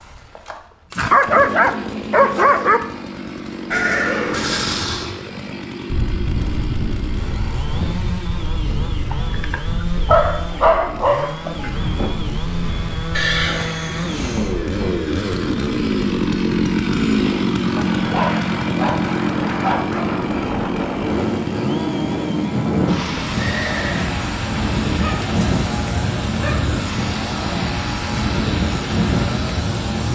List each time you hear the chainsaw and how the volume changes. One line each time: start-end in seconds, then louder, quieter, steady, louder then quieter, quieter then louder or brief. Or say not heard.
0.0-30.1 louder then quieter.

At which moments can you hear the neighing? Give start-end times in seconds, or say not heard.
3.7-5.2, 13.2-14.5, 23.4-24.1.